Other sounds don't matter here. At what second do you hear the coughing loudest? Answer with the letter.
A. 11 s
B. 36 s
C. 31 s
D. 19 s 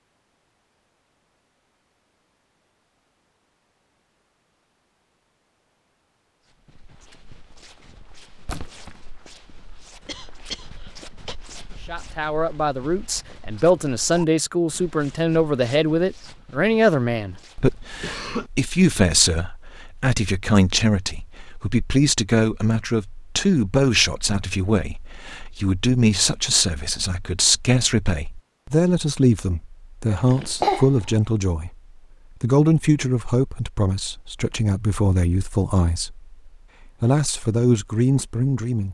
C.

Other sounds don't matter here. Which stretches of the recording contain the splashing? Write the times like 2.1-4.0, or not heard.
8.4-9.1.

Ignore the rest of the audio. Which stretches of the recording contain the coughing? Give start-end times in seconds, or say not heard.
10.1-11.3, 18.0-18.5, 30.1-31.1.